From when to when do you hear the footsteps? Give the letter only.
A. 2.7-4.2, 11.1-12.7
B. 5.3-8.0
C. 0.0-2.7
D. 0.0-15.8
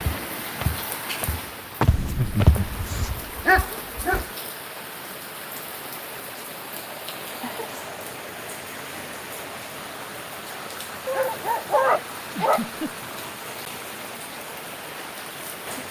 C.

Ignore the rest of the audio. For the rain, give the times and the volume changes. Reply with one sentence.
You can hear the rain from 0.0 to 15.8 s, at a steady volume.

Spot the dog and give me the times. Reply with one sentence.
You can hear the dog from 2.7 to 4.2 s and from 11.1 to 12.7 s.